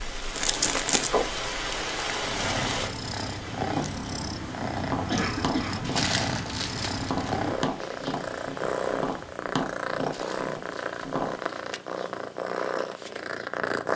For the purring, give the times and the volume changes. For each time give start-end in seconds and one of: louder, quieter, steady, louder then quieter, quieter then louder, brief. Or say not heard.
2.1-13.9 steady.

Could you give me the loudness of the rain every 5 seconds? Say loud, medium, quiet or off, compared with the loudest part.
loud, medium, off.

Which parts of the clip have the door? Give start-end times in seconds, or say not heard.
not heard.